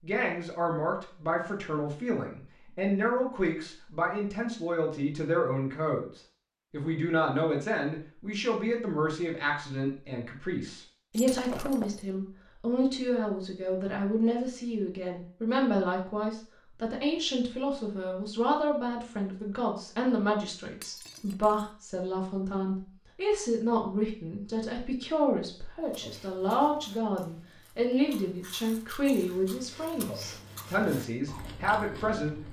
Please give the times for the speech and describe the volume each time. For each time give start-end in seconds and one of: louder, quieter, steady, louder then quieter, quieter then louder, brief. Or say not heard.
0.0-32.4 steady.